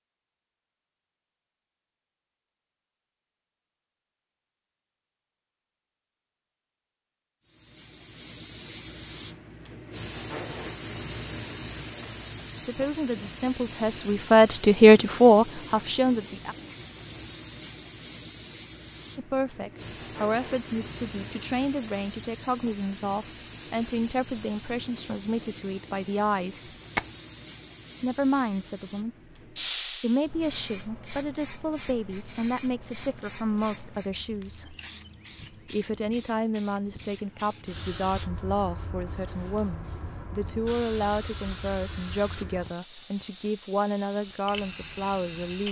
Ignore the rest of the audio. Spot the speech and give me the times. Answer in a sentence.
You can hear the speech from 12.6 to 16.6 s, from 19.1 to 26.7 s, from 28.0 to 29.1 s, from 29.9 to 34.8 s and from 35.7 to 45.6 s.